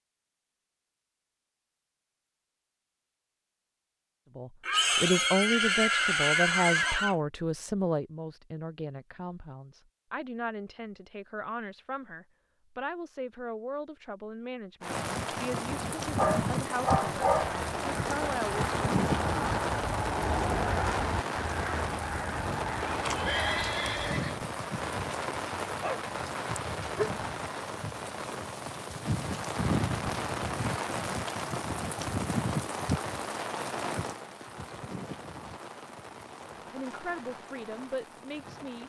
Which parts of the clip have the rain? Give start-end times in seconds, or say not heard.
14.8-38.8.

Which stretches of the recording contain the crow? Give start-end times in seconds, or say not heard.
17.4-24.1.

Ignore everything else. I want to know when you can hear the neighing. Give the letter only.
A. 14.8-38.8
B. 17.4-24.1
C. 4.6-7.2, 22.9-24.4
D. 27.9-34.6
C.